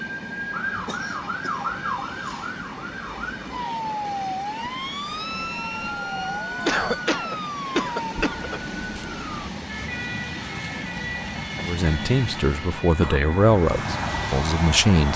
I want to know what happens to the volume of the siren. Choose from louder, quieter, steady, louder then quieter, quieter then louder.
quieter.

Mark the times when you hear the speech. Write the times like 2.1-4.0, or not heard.
11.6-15.1.